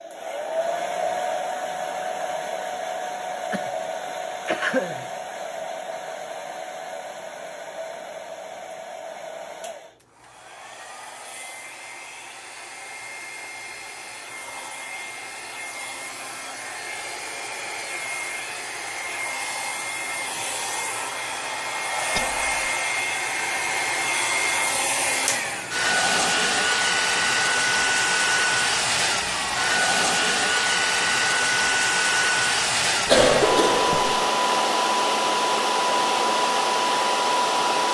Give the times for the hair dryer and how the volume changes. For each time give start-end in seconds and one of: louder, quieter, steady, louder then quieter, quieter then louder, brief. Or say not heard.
0.0-37.8 quieter then louder.